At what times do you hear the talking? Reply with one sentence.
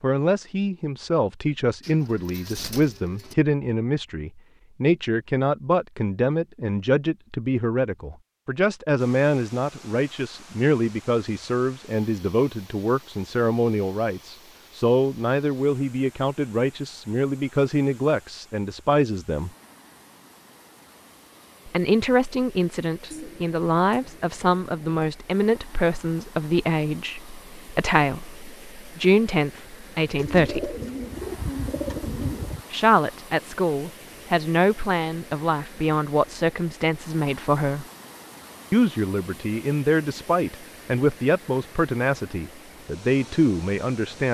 The talking can be heard from 0.0 to 19.5 s, from 21.6 to 30.8 s, from 32.7 to 37.9 s and from 38.7 to 44.2 s.